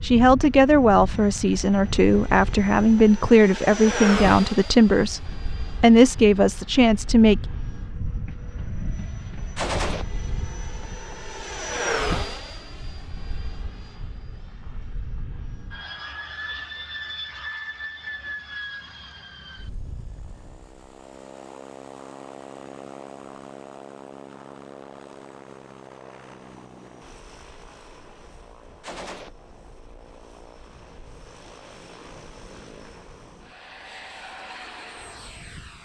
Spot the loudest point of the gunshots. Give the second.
10 s.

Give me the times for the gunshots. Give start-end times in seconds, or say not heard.
9.6-10.1, 28.8-29.3.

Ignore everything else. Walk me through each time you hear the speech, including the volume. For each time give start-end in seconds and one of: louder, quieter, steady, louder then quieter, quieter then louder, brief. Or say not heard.
0.0-7.5 steady.